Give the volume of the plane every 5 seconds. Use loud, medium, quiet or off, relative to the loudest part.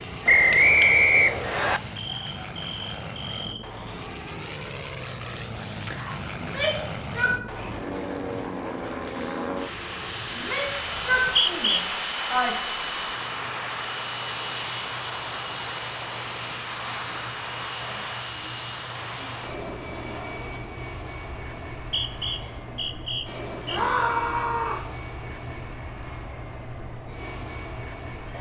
medium, loud, loud, loud, medium, medium.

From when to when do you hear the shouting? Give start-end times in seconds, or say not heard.
6.3-7.7, 10.3-12.6, 23.7-24.9.